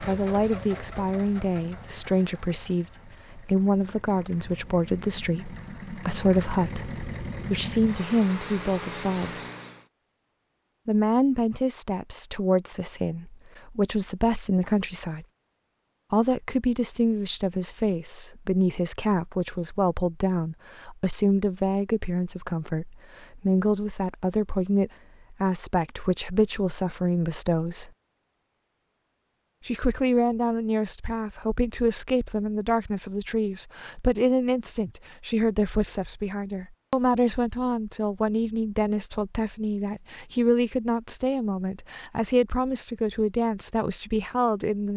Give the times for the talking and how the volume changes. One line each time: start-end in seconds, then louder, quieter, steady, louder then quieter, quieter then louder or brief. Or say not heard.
0.0-9.4 steady
10.8-15.2 quieter then louder
16.1-27.9 steady
29.6-44.9 steady.